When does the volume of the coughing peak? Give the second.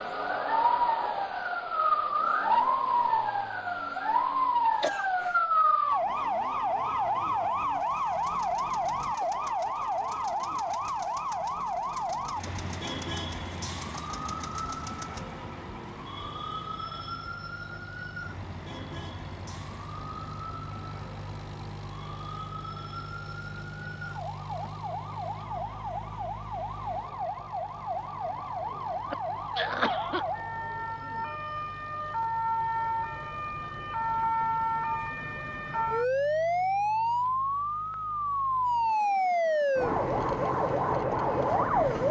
30 s.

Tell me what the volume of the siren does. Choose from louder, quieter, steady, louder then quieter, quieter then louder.
quieter then louder.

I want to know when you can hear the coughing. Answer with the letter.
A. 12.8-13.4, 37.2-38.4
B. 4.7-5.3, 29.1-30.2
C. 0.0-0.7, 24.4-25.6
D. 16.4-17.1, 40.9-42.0
B.